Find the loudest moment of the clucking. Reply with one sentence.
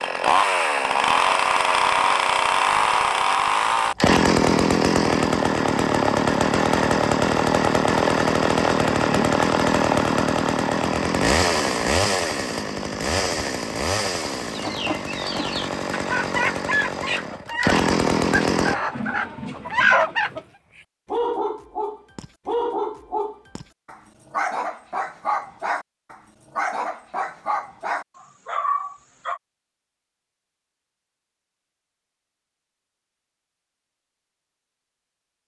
The volume of the clucking peaks at 20 seconds.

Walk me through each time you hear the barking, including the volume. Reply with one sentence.
You can hear the barking from 19.8 to 29.4 s, at a steady volume.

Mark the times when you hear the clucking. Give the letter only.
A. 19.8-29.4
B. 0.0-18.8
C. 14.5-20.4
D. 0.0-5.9
C.